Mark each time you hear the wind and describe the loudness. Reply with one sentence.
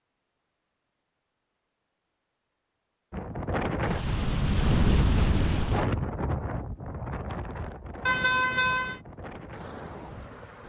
The wind can be heard from 3.1 to 10.6 s, getting quieter.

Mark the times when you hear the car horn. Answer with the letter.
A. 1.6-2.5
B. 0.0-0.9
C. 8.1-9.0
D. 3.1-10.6
C.